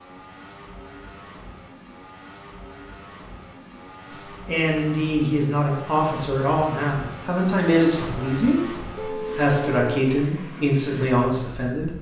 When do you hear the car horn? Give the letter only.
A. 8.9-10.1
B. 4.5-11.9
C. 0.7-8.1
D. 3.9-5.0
A.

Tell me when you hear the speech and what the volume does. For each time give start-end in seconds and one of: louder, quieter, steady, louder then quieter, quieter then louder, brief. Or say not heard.
4.5-11.9 steady.